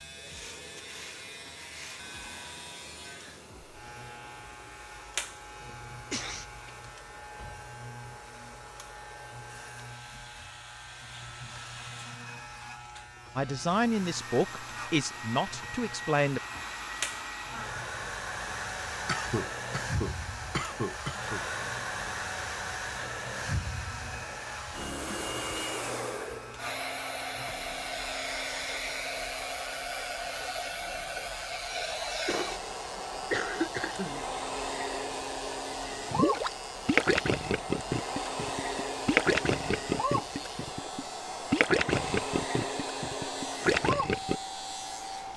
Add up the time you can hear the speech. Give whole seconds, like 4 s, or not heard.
3 s.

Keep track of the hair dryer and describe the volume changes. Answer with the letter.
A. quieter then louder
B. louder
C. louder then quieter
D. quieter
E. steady
B.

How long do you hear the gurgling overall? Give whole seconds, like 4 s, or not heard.
8 s.